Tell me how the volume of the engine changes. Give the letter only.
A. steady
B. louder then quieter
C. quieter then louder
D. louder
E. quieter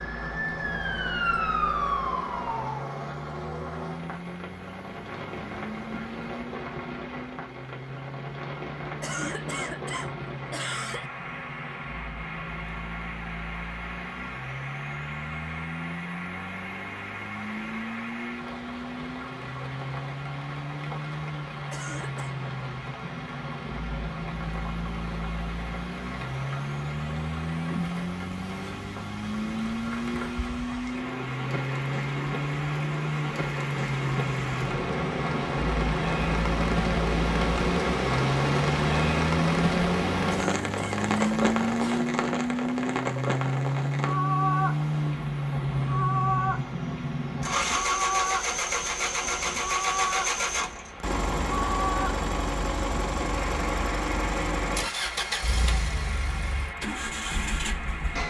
D.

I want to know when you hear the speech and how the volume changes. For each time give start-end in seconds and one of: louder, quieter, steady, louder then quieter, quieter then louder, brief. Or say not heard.
not heard.